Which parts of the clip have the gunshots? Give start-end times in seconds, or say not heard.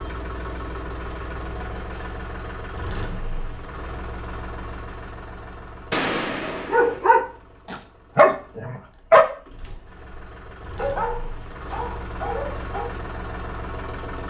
5.9-7.0.